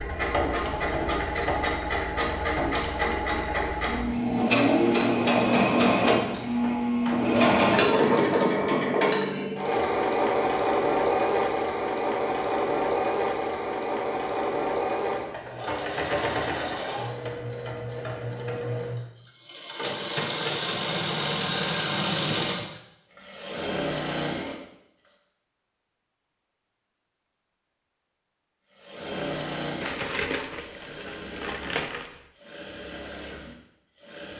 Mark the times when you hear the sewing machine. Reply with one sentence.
The sewing machine can be heard from 0.0 to 24.6 s and from 28.7 to 34.3 s.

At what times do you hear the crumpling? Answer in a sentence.
You can hear the crumpling from 29.8 to 32.2 s.